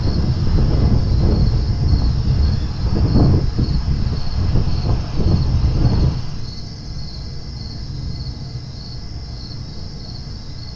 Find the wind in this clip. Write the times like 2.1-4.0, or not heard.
0.0-6.4.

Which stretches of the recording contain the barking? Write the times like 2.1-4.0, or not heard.
not heard.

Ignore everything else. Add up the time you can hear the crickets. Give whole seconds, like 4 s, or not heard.
11 s.